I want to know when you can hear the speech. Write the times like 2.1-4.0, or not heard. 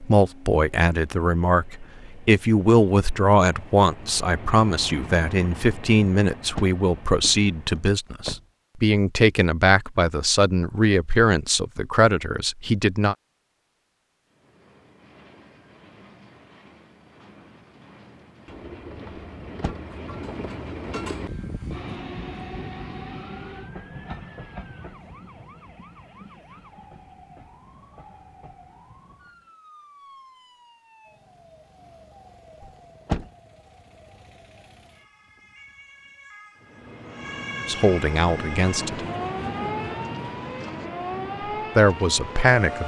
0.0-13.2, 37.6-39.0, 41.8-42.8.